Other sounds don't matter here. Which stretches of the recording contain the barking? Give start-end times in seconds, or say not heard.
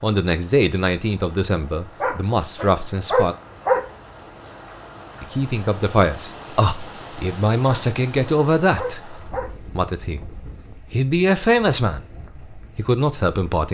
2.0-3.9, 7.7-9.5.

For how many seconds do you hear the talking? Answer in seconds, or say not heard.
12 s.